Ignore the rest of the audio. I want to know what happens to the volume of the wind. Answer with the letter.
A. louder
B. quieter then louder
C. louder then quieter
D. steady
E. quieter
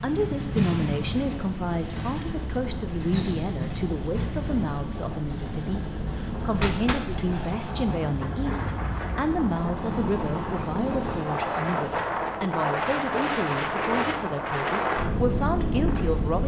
A.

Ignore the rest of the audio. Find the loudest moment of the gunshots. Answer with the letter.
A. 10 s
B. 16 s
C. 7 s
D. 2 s
C.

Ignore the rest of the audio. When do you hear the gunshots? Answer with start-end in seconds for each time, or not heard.
6.6-8.1.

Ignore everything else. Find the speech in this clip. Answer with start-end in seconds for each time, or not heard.
0.0-16.4.